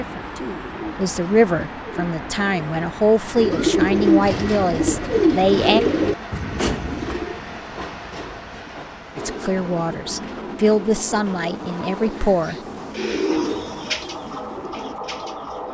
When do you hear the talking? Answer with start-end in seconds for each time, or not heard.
0.0-5.8, 9.2-12.6.